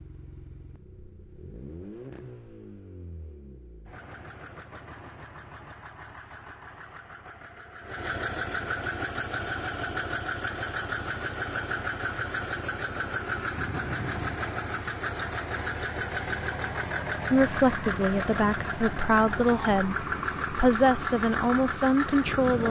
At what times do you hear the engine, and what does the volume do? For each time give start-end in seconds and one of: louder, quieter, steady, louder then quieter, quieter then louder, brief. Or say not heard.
0.0-22.6 louder.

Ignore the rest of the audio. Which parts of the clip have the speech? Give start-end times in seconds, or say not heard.
17.3-22.6.